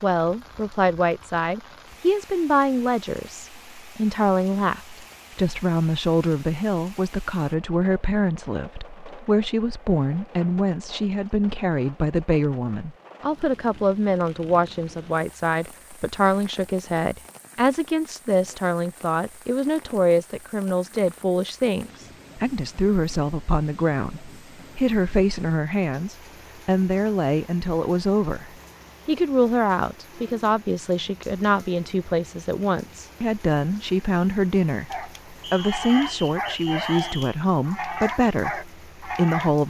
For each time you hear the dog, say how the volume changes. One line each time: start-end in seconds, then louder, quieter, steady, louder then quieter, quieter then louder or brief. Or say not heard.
34.9-39.5 steady.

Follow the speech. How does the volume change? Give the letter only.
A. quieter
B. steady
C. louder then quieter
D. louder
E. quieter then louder
B.